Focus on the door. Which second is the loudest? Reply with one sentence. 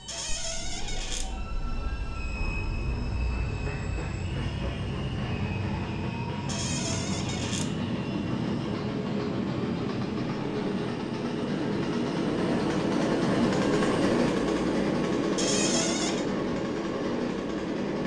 The volume of the door peaks at 16 seconds.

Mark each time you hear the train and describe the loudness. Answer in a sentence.
You can hear the train from 0.0 to 18.0 s, getting louder.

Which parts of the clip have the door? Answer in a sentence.
The door can be heard from 0.1 to 1.2 s, from 6.5 to 7.7 s and from 15.3 to 16.2 s.